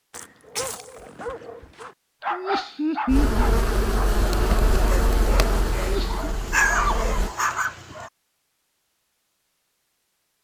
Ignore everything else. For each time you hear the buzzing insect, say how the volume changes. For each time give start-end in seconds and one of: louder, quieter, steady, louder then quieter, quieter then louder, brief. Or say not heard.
3.0-7.3 quieter.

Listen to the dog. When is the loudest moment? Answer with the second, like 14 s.
7 s.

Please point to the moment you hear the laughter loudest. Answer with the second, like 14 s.
3 s.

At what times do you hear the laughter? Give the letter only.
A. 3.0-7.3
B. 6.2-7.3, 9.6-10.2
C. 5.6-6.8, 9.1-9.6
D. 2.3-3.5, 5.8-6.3
D.